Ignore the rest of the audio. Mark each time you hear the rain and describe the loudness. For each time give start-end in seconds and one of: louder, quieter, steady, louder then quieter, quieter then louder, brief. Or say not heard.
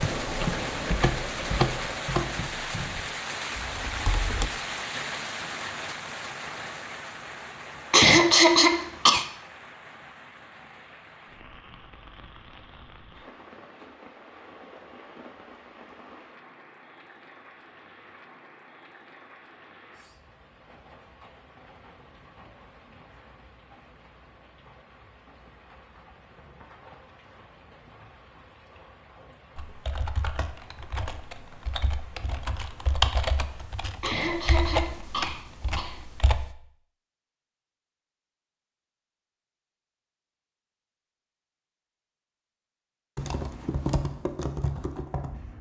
0.0-33.9 quieter.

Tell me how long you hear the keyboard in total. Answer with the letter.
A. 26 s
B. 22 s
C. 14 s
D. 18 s
C.